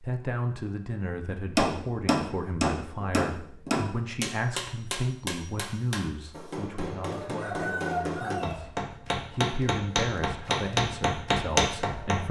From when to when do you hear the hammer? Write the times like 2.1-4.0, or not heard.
1.6-12.2.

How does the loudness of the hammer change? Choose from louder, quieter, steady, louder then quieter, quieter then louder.
quieter then louder.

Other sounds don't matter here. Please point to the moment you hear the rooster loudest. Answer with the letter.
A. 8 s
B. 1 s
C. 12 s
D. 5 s
A.